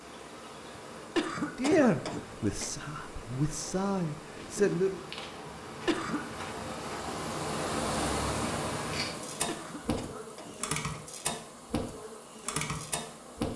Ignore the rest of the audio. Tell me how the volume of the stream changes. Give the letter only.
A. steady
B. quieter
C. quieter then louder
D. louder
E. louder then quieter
E.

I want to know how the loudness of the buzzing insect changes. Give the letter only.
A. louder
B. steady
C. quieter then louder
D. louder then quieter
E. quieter
A.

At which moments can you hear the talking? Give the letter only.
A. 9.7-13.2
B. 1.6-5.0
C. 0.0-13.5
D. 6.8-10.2
B.